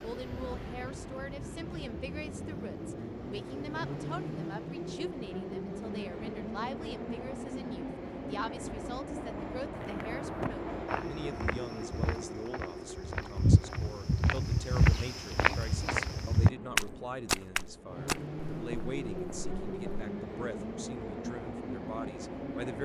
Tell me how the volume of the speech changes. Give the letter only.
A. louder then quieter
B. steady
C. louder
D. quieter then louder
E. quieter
B.